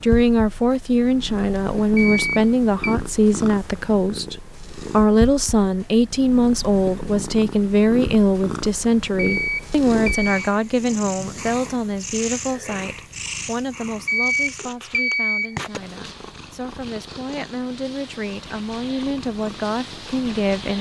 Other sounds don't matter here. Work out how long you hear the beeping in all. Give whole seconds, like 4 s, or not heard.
4 s.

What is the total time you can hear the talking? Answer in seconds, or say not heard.
21 s.